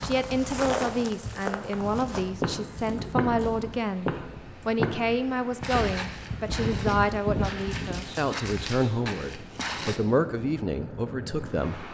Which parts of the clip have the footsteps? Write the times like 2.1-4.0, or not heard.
0.0-10.0.